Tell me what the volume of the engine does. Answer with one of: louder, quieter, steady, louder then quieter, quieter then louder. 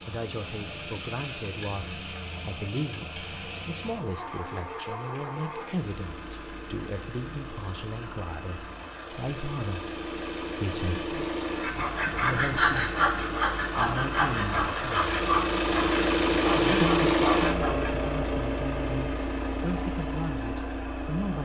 louder.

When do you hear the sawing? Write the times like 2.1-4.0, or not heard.
11.6-18.1.